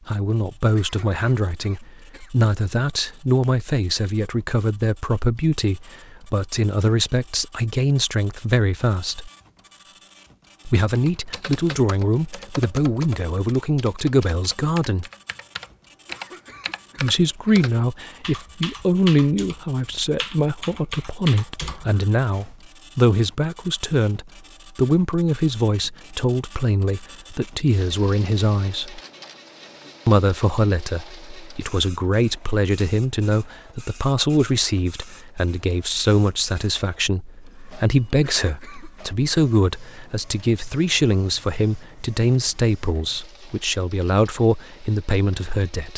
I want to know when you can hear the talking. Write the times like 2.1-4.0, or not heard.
0.1-9.3, 10.7-15.1, 16.9-29.0, 30.1-45.9.